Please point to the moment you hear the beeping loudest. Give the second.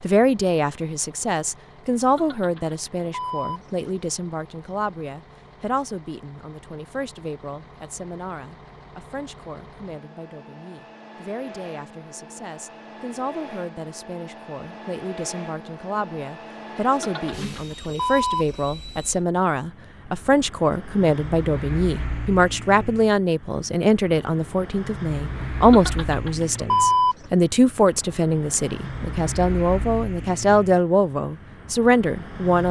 27 s.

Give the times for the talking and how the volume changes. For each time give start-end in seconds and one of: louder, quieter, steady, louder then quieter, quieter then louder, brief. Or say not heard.
0.0-32.6 quieter then louder.